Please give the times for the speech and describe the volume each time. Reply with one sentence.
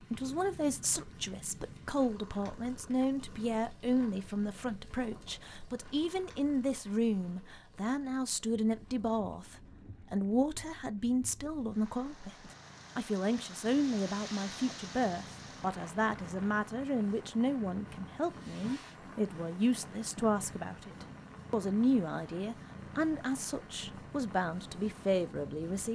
The speech can be heard from 0.1 to 25.9 s, at a steady volume.